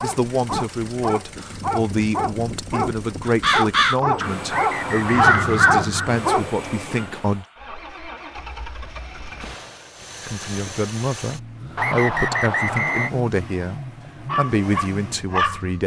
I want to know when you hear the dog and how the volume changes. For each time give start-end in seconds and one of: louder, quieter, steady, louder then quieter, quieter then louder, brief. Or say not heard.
0.0-6.5 louder
14.2-15.7 brief.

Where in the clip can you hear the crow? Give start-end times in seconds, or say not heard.
3.2-6.1.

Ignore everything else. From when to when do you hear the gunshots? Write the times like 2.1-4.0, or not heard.
not heard.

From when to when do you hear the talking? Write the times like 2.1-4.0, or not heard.
0.0-7.5, 10.2-15.8.